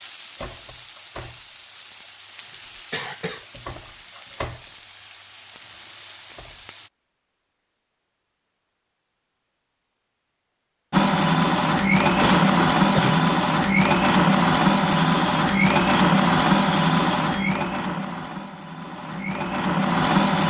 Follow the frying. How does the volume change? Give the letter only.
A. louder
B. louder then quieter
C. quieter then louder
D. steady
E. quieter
D.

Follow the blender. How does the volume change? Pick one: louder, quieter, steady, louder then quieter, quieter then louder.
quieter.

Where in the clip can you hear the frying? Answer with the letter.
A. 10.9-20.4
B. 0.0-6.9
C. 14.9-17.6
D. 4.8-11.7
B.